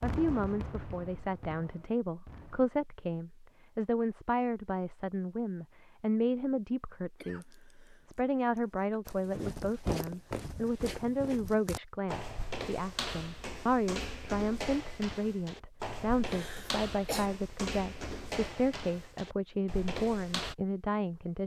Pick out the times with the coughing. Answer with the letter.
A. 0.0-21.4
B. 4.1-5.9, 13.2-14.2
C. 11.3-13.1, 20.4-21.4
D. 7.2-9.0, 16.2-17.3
D.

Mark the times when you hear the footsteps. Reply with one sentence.
You can hear the footsteps from 9.1 to 20.6 s.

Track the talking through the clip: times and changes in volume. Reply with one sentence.
The talking can be heard from 0.0 to 21.4 s, at a steady volume.